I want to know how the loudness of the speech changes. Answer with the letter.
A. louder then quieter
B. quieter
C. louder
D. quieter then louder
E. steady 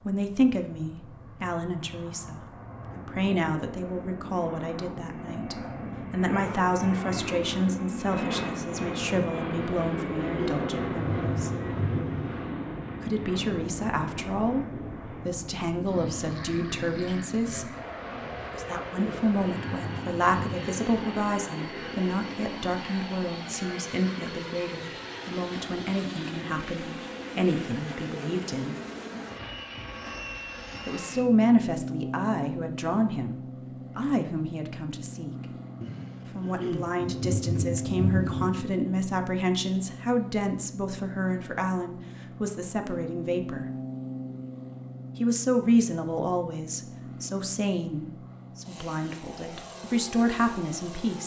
E.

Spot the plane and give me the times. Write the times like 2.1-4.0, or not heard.
0.0-51.2.